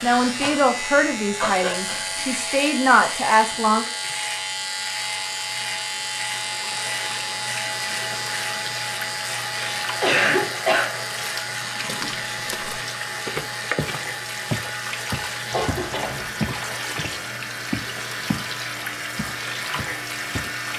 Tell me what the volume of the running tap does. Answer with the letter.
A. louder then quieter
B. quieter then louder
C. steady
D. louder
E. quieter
D.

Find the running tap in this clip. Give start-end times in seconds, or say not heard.
0.0-20.7.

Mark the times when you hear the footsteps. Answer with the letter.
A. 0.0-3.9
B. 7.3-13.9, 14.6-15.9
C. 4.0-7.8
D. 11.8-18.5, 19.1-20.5
D.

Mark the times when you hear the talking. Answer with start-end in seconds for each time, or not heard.
0.0-3.9.